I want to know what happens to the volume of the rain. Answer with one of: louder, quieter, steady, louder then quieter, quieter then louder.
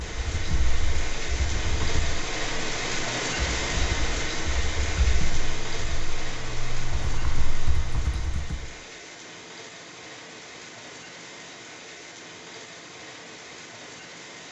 quieter.